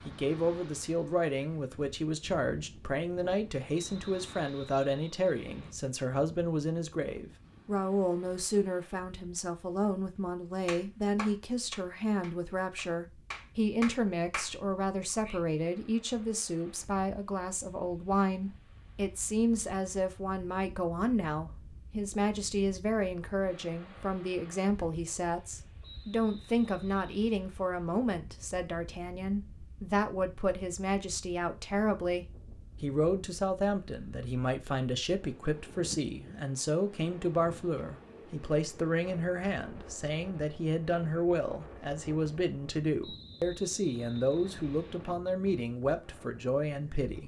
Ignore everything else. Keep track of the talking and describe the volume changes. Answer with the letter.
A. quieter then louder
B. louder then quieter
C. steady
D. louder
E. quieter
C.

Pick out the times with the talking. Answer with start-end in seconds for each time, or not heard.
0.1-47.2.